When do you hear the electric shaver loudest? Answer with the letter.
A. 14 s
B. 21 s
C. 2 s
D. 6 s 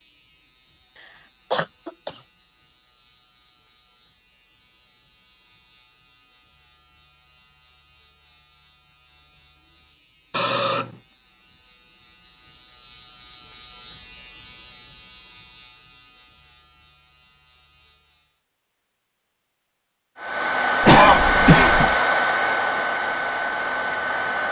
A.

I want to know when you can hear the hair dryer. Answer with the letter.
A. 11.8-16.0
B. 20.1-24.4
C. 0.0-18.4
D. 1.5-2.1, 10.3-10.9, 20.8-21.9
B.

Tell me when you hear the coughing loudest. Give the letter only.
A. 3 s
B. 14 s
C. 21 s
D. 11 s
C.